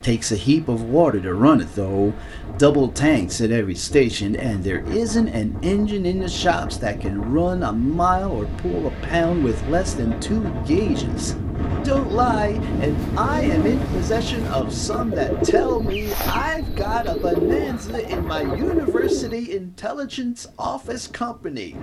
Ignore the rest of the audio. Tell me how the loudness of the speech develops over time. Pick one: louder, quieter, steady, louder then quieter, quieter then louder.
quieter.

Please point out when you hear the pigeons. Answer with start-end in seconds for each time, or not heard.
12.1-19.4.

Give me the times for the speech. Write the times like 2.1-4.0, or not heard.
0.0-21.7.